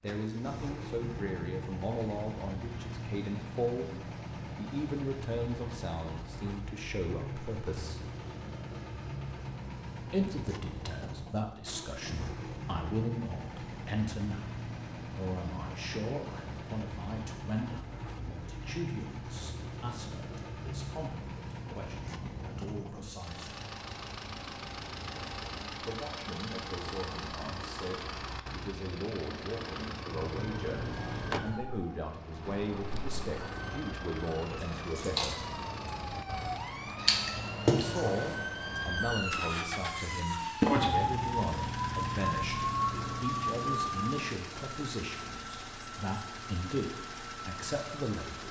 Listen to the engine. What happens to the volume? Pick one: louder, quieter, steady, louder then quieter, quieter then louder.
steady.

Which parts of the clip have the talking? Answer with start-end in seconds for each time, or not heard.
0.0-8.1, 10.1-23.5, 25.8-35.5, 37.6-48.4.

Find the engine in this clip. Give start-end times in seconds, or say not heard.
0.1-48.4.